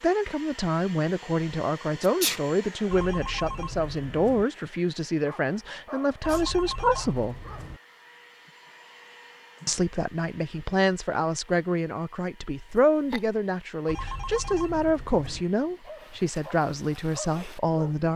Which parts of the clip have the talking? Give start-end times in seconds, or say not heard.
0.0-7.3, 9.7-18.1.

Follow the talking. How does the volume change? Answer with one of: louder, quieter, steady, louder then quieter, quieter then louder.
steady.